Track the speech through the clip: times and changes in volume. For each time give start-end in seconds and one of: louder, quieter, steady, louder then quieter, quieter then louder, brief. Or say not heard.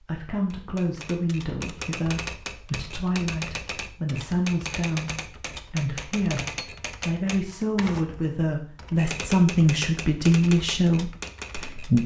0.0-12.0 louder.